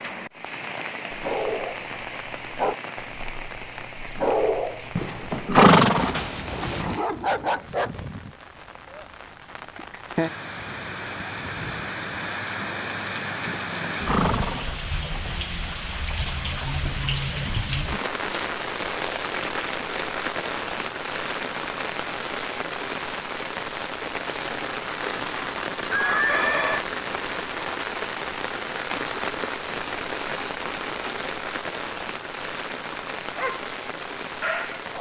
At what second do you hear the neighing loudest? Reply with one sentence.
The volume of the neighing peaks at 6 seconds.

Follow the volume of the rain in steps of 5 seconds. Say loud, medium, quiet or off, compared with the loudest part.
medium, quiet, loud, loud, loud, loud, loud.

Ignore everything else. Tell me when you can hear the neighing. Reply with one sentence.
You can hear the neighing from 5.0 to 6.8 s, from 13.4 to 15.3 s and from 25.9 to 26.9 s.